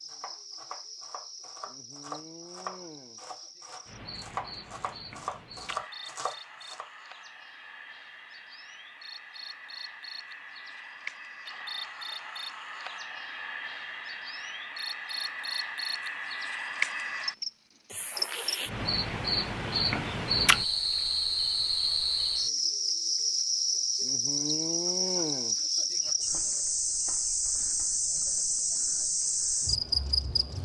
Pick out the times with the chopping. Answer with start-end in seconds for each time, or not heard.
0.0-6.9, 25.4-27.9.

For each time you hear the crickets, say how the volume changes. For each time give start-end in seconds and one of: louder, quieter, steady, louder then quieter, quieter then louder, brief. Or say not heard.
0.0-30.6 louder.